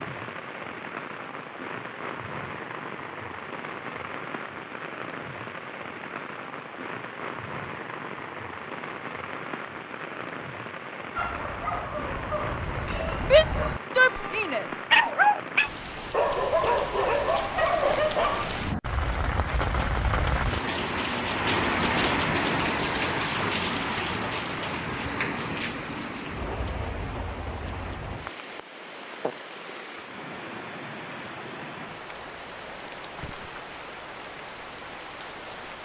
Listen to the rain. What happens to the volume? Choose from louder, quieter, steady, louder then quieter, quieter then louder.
louder then quieter.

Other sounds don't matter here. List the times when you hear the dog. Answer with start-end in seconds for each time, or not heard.
11.2-18.5.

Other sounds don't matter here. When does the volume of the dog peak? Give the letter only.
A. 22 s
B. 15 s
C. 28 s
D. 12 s
B.